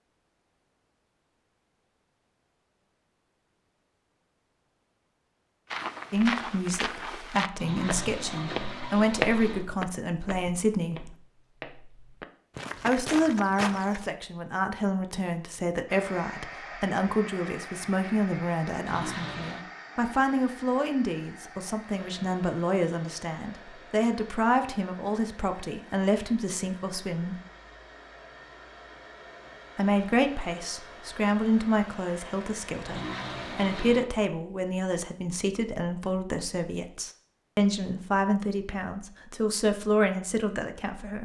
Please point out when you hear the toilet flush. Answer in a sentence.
You can hear the toilet flush from 7.5 to 9.7 s, from 18.9 to 19.6 s and from 32.9 to 34.0 s.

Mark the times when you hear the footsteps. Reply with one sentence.
The footsteps can be heard from 5.7 to 14.1 s.